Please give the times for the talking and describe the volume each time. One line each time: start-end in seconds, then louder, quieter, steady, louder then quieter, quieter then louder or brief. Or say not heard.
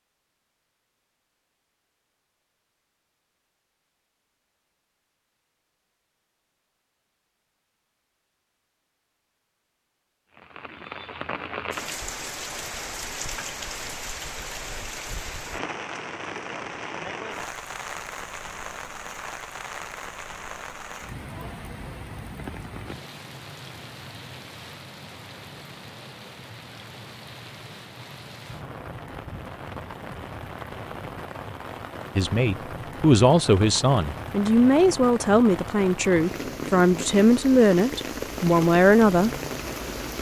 32.1-39.3 steady.